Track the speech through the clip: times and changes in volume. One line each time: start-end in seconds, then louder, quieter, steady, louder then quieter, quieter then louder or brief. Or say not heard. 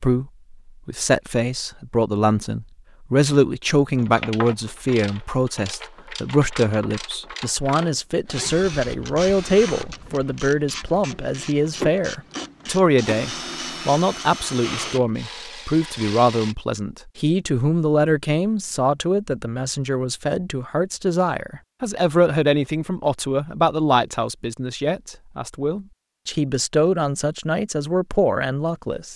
0.0-29.1 steady.